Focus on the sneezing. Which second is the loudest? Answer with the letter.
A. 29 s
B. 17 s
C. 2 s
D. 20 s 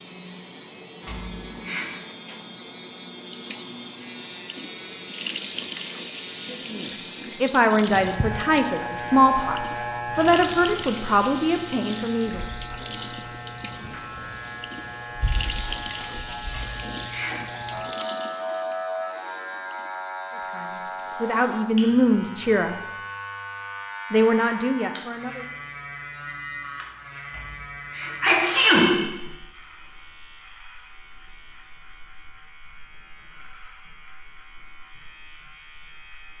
A.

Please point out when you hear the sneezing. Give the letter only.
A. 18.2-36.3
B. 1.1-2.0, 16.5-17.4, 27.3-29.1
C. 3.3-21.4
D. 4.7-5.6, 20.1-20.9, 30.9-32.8
B.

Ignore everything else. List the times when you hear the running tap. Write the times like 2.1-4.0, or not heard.
3.3-21.4.